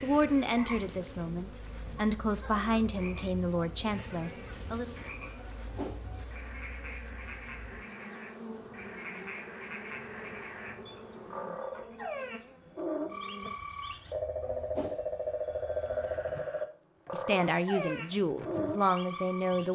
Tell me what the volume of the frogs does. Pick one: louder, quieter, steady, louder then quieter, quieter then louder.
louder.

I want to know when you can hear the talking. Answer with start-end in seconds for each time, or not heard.
0.0-5.0, 17.1-19.6.